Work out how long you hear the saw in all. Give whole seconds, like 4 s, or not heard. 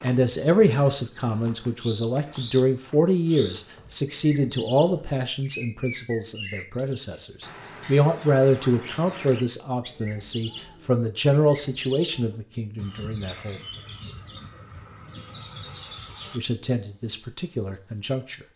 not heard.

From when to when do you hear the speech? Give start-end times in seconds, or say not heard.
0.0-13.6, 16.4-18.4.